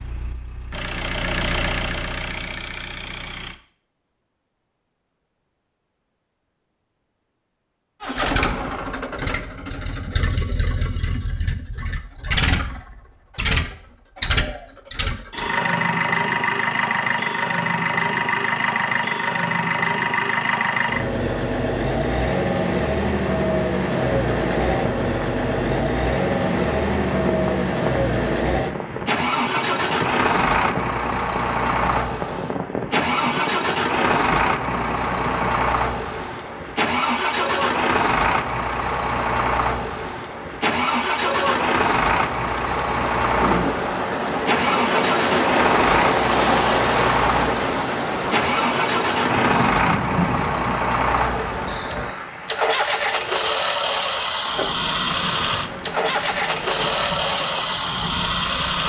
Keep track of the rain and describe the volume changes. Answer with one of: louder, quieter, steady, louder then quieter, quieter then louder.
louder then quieter.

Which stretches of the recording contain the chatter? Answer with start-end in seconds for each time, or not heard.
not heard.